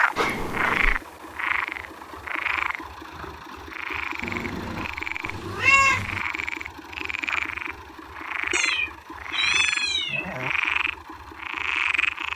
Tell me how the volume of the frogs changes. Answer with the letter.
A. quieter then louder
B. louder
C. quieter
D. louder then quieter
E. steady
A.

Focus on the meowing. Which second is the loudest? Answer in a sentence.
The loudest moment of the meowing is at 6 seconds.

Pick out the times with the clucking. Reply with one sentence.
You can't hear the clucking here.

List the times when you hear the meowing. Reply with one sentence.
You can hear the meowing from 0.1 to 1.0 s, from 4.2 to 6.2 s and from 8.5 to 10.5 s.